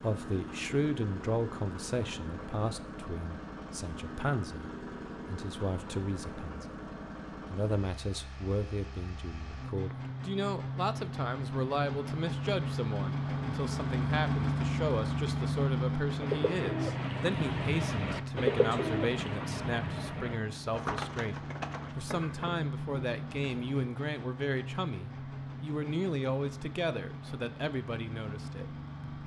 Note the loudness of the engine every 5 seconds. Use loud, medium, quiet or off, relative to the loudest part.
medium, medium, loud, loud, medium, medium.